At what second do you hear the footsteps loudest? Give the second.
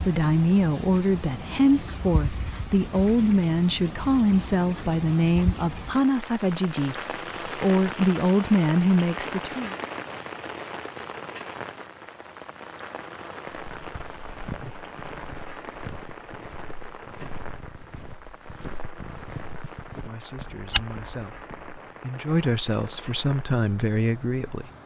21 s.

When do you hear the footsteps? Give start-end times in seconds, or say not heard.
13.5-21.8.